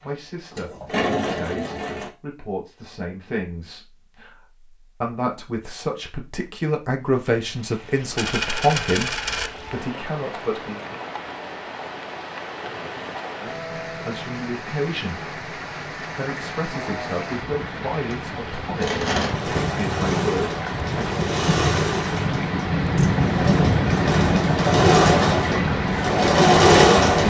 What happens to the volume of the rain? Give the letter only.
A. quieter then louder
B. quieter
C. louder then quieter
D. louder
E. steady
D.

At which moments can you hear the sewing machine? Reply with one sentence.
You can hear the sewing machine from 0.0 to 2.1 s and from 18.1 to 27.2 s.